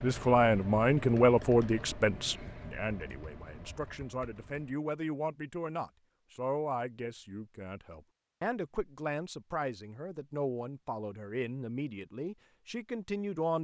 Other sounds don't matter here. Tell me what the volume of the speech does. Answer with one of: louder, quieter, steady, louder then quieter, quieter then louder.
quieter.